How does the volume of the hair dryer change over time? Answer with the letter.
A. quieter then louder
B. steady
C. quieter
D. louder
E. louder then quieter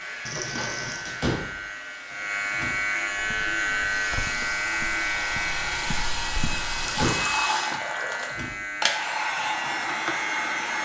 D.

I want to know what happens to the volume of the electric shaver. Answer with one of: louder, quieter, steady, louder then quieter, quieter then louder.
louder then quieter.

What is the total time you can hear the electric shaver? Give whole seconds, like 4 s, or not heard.
11 s.